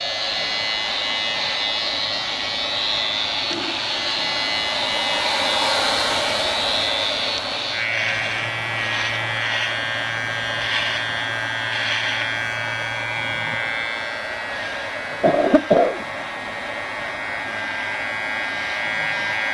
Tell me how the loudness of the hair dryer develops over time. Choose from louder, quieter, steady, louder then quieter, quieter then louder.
louder then quieter.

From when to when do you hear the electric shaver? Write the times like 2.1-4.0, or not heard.
0.0-19.4.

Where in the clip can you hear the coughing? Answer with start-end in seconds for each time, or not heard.
15.2-16.1.